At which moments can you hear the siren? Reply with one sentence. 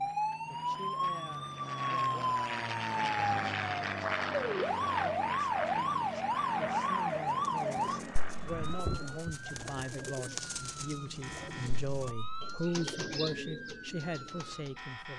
You can hear the siren from 0.0 to 15.1 s.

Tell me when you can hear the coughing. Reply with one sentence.
You can't hear the coughing here.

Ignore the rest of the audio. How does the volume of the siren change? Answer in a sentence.
The volume of the siren goes down.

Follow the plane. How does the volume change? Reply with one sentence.
The volume of the plane goes up, then down.